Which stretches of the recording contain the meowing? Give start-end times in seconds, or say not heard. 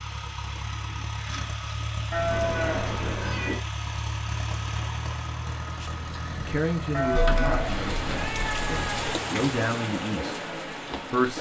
2.3-3.6, 7.2-9.2.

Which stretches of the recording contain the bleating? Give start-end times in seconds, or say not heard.
2.1-3.2, 6.9-8.2.